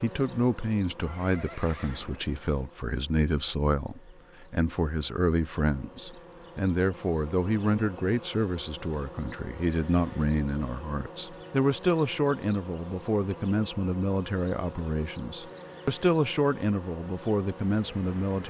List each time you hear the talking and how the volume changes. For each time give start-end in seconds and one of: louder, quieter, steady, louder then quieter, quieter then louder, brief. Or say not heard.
0.0-18.4 steady.